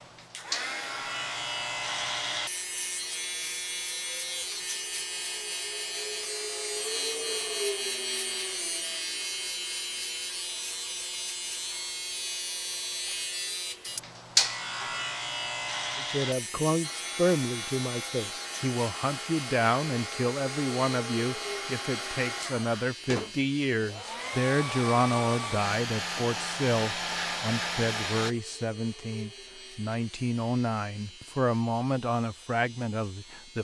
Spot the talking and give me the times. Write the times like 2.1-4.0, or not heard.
15.9-33.5.